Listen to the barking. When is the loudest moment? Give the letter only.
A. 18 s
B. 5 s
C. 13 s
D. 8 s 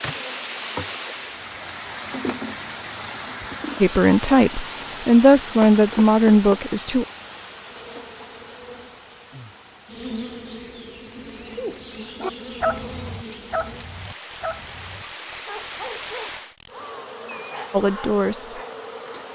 C.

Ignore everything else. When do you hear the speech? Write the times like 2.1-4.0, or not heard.
3.8-7.0, 17.7-18.6.